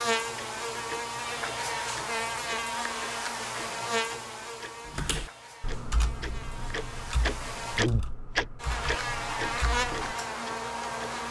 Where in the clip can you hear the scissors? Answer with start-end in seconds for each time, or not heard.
not heard.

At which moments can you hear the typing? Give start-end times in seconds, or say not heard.
4.8-10.2.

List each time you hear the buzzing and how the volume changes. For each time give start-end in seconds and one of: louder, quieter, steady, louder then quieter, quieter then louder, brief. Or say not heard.
0.0-11.2 quieter then louder.